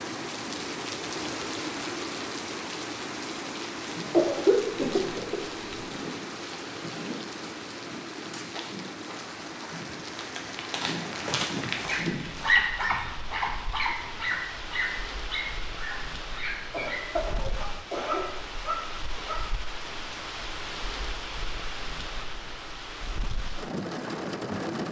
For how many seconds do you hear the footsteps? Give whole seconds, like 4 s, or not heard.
9 s.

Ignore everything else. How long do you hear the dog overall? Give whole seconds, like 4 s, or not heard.
8 s.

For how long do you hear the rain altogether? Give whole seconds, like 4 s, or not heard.
25 s.